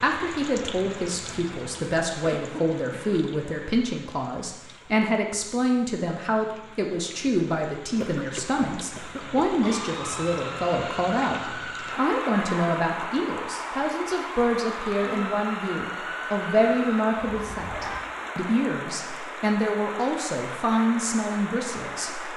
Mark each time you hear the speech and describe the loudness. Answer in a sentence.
You can hear the speech from 0.0 to 22.3 s, at a steady volume.